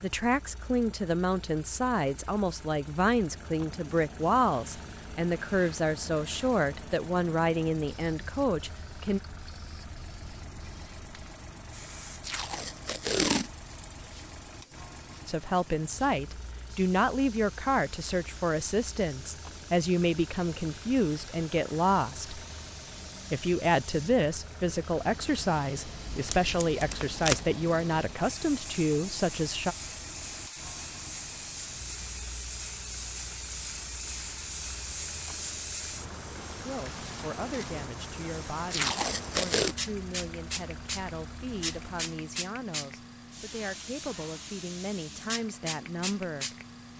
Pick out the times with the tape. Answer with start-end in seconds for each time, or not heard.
12.2-13.5, 26.1-27.5, 38.7-39.8.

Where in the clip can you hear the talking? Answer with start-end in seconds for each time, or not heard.
0.0-9.2, 15.2-22.4, 23.3-29.8, 36.5-46.5.